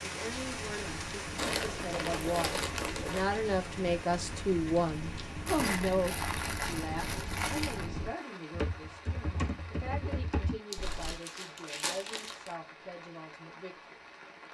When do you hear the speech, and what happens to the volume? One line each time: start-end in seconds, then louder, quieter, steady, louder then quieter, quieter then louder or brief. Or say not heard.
0.0-14.0 louder then quieter.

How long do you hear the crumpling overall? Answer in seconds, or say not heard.
6 s.